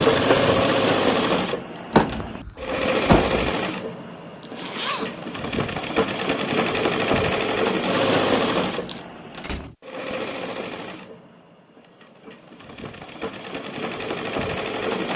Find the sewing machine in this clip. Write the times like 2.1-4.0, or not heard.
0.0-15.1.